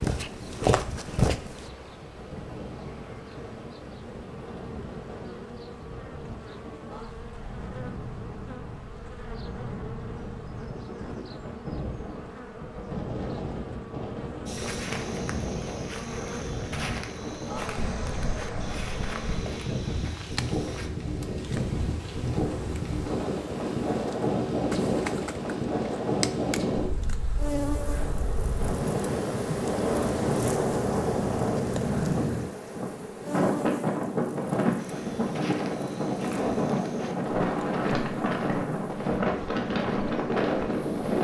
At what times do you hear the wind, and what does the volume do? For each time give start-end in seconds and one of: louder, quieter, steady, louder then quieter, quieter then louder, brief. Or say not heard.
0.1-41.1 louder.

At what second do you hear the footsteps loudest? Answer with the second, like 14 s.
1 s.